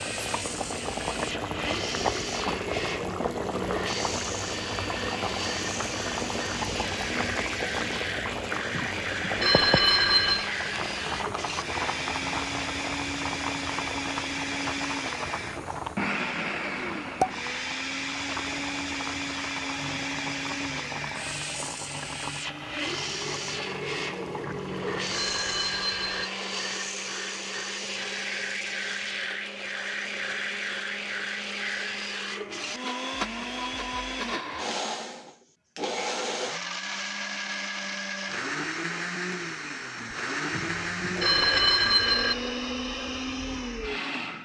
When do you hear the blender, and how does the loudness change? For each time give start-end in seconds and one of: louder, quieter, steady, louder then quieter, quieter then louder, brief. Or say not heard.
0.0-44.4 steady.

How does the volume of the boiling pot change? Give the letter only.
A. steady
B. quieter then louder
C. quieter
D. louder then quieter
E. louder
C.